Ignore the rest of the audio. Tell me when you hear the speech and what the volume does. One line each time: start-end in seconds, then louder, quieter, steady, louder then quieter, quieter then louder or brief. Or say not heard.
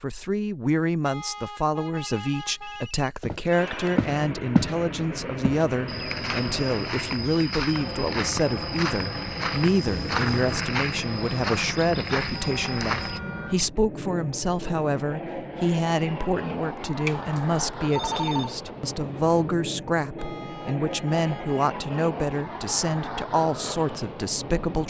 0.0-24.8 steady.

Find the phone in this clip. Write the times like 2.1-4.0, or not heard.
1.9-4.0, 9.8-10.7, 17.1-18.6.